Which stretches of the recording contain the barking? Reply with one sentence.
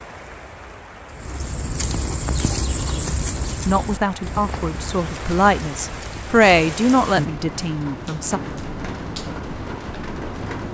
The barking can't be heard in this clip.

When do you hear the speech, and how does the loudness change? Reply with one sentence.
The speech can be heard from 3.6 to 8.4 s, getting louder then quieter.